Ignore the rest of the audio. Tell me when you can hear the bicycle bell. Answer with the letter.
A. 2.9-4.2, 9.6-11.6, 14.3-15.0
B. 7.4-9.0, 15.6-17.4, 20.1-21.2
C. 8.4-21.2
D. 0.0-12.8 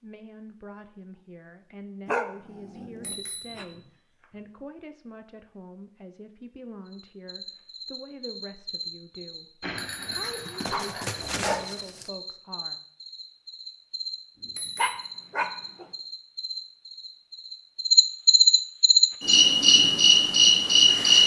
A.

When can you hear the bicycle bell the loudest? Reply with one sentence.
The loudest moment of the bicycle bell is at 10 seconds.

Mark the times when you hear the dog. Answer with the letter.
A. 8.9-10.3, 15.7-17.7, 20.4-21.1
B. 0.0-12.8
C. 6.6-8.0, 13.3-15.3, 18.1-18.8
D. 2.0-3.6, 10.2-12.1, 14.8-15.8
D.